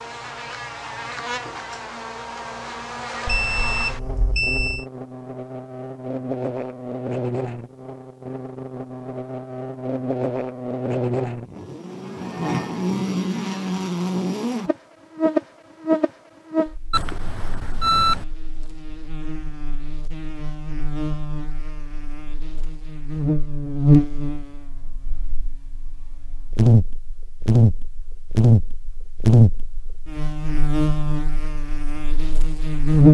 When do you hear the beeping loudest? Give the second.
18 s.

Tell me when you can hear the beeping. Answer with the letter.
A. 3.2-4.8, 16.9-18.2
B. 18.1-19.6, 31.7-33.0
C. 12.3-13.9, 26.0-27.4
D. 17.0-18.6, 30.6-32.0
A.